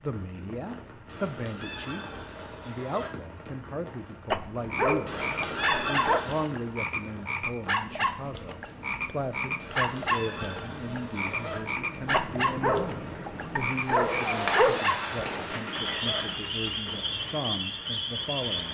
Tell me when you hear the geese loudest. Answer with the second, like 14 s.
6 s.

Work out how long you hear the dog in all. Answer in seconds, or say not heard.
5 s.